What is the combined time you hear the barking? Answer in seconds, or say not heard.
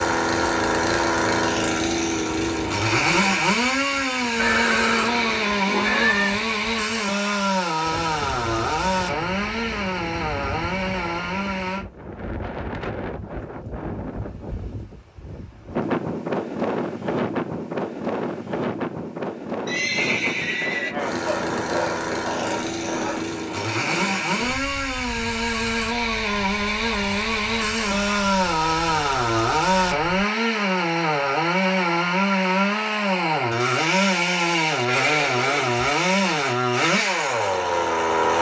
2 s.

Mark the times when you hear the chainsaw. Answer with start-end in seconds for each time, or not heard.
0.0-11.8, 20.9-38.3.